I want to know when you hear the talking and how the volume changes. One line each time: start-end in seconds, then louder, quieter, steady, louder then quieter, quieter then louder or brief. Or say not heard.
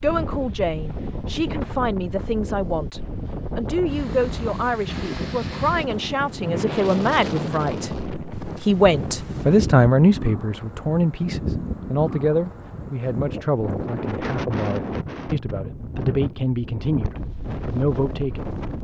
0.0-18.5 louder then quieter.